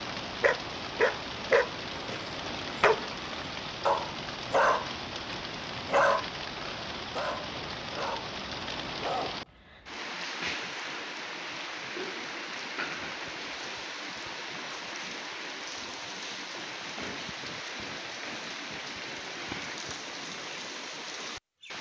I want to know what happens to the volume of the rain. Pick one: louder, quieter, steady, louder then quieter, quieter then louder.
steady.